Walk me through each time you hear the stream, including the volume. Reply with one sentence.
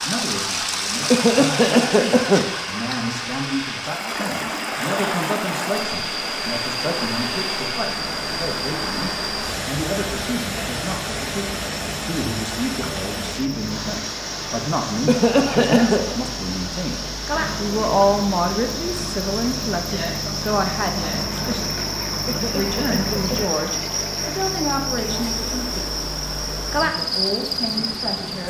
The stream can be heard from 0.0 to 28.4 s, getting quieter.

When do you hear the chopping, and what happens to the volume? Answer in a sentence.
You can't hear the chopping here.